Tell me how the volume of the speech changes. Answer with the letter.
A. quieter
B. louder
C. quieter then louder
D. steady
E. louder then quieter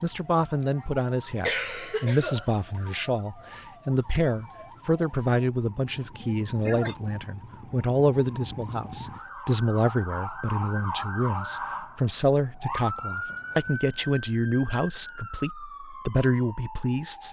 D.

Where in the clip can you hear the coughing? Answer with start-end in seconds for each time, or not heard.
1.4-3.1, 6.2-7.0, 13.2-14.2.